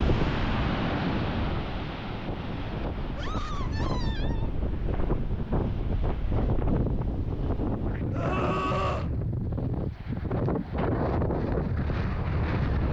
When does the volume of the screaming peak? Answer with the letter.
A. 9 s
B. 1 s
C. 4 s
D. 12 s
A.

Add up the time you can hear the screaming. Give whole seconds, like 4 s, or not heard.
2 s.